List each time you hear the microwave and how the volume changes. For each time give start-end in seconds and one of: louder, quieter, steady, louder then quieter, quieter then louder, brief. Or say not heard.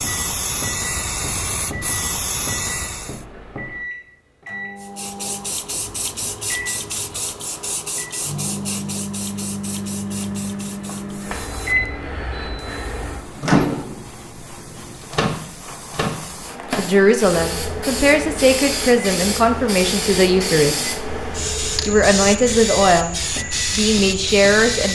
0.0-24.8 louder then quieter.